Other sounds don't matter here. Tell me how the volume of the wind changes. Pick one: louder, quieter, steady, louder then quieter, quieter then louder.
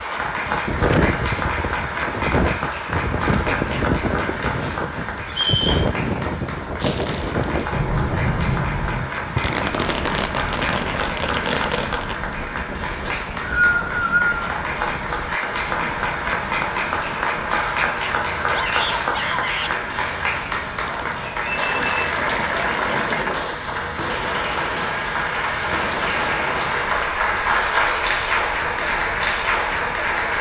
quieter.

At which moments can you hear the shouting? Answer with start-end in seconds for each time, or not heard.
18.5-19.8.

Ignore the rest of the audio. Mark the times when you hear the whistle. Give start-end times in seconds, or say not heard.
5.3-5.9, 13.1-14.5, 21.4-21.9.